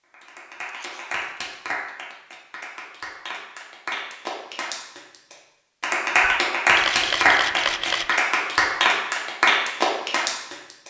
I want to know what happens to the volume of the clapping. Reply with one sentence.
The loudness of the clapping goes up.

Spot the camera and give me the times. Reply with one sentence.
The camera can be heard from 0.7 to 1.3 s and from 6.2 to 8.2 s.